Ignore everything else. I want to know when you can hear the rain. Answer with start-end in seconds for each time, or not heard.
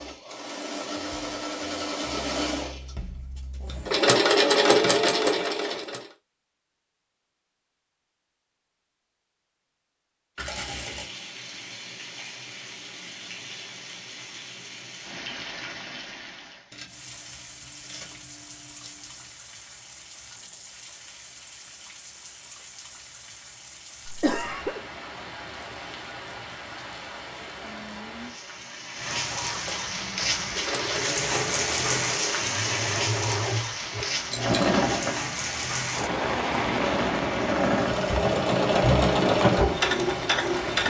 10.6-40.8.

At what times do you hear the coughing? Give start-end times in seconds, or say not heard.
24.1-24.8.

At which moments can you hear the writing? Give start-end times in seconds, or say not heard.
not heard.